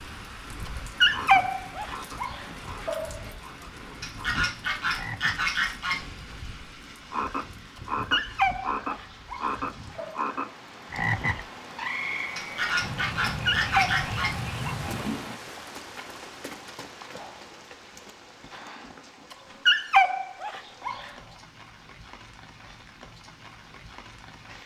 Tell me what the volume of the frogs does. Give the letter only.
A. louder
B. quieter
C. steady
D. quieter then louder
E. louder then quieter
E.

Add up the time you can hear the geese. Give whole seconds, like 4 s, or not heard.
4 s.